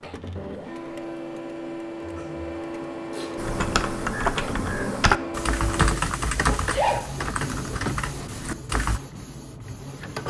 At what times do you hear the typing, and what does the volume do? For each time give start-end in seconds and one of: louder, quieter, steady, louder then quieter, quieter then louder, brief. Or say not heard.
3.4-9.0 quieter.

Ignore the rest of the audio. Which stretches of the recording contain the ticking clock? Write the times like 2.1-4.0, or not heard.
not heard.